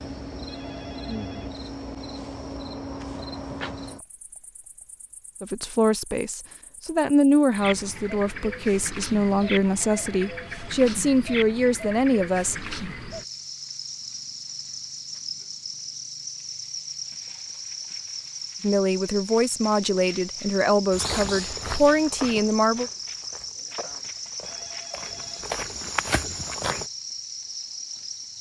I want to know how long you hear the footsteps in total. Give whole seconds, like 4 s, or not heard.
6 s.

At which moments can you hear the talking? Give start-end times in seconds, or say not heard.
5.4-12.6, 18.6-22.9.